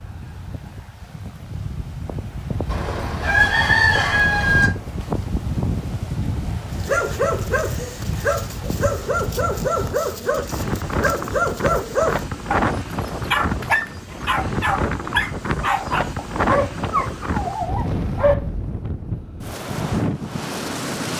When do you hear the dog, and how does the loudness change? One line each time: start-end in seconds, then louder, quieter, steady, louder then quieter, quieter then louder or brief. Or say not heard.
6.7-18.4 steady.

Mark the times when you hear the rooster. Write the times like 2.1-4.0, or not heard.
2.6-4.7.